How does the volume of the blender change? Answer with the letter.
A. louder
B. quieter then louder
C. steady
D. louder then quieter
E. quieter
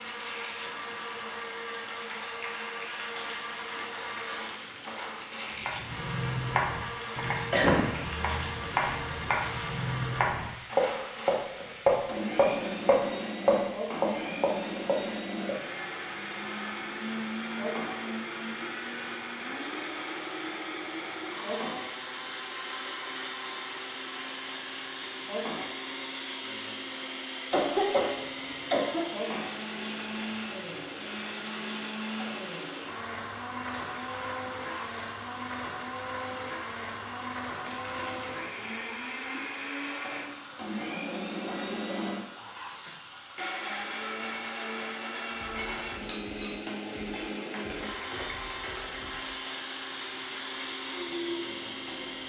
C.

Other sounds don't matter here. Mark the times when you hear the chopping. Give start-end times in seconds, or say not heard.
5.6-15.6.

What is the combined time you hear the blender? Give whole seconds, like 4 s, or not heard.
52 s.